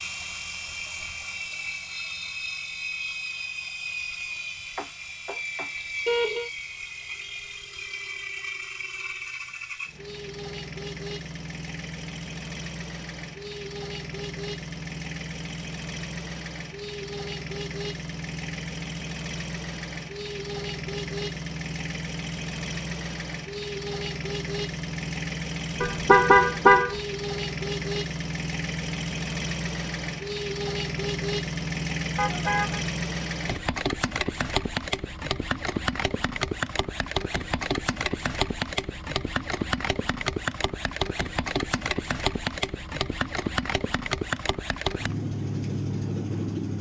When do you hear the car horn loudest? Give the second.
26 s.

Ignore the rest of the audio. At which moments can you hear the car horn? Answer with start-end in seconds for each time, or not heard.
4.8-6.5, 25.8-26.9, 32.1-32.8.